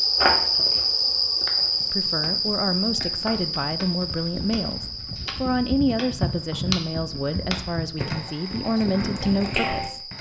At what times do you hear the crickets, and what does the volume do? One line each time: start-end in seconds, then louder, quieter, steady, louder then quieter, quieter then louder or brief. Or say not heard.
0.0-10.1 quieter.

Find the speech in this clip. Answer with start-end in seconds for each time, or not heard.
1.9-10.1.